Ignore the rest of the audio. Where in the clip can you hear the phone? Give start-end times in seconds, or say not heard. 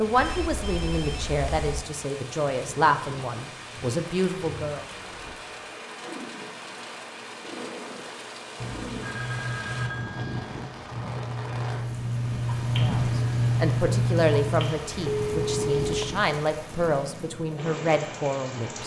0.1-1.9, 8.6-10.6, 15.1-16.1.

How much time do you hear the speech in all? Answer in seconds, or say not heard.
11 s.